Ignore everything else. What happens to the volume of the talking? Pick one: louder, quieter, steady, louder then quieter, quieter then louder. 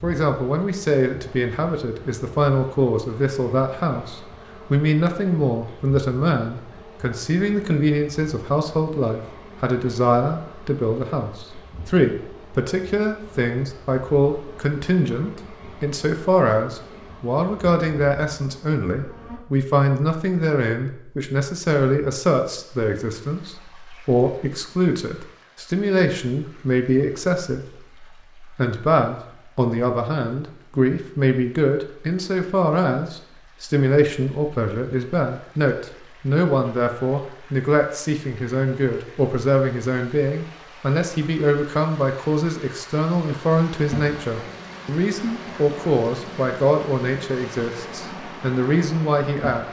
steady.